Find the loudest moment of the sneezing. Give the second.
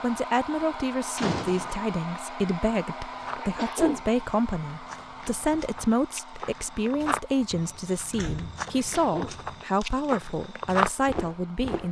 4 s.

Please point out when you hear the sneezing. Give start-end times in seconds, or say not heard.
3.4-4.0, 8.7-9.3.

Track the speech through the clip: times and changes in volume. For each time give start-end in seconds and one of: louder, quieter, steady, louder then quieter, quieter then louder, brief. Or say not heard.
0.0-11.8 steady.